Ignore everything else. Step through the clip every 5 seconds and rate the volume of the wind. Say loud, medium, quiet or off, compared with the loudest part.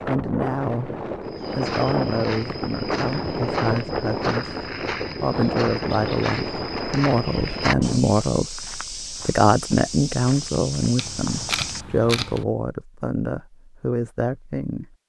loud, loud, off.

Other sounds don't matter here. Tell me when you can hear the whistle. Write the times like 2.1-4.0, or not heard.
not heard.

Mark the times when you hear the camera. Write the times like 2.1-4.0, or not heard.
10.9-12.4.